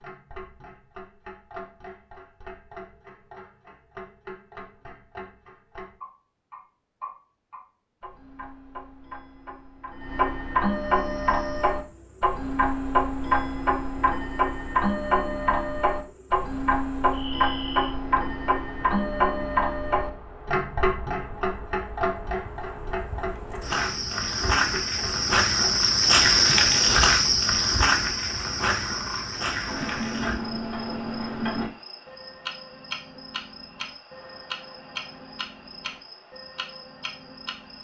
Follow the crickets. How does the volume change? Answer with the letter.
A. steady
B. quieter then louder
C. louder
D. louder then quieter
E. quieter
D.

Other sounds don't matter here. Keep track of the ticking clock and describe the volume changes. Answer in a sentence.
The volume of the ticking clock goes up, then down.